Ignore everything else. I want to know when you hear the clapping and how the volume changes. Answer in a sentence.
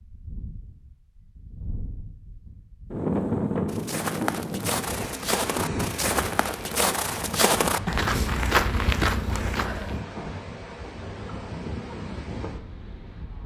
The clapping can't be heard in this clip.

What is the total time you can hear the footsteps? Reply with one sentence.
The footsteps can be heard for 6 seconds in total.